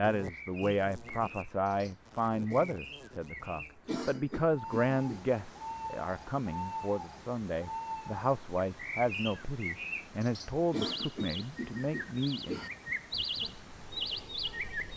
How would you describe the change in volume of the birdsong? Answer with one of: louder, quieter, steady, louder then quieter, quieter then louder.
louder.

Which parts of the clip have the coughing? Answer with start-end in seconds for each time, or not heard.
3.9-5.2, 10.7-12.7.